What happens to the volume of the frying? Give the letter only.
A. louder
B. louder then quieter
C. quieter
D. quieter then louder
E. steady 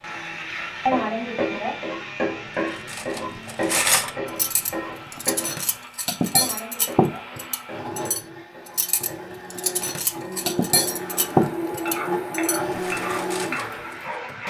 D.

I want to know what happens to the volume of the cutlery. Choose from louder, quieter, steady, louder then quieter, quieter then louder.
quieter then louder.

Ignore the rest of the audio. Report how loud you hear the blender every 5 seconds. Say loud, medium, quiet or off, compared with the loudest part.
medium, medium, loud.